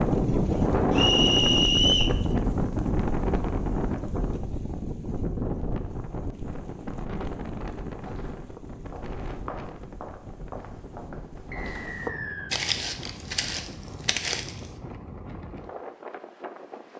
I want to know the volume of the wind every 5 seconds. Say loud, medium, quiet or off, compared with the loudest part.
loud, medium, quiet, quiet.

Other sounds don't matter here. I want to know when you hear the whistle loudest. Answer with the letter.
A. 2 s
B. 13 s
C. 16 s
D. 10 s
A.